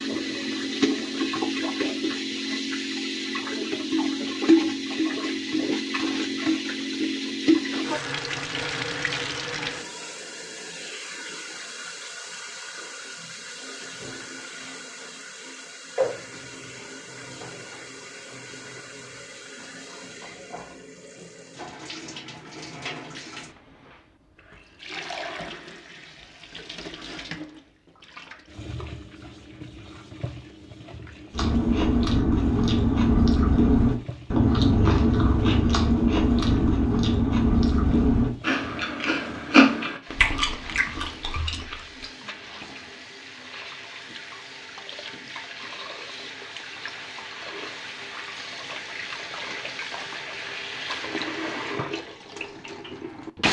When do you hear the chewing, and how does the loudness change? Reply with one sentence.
You can hear the chewing from 31.3 to 42.1 s, getting quieter.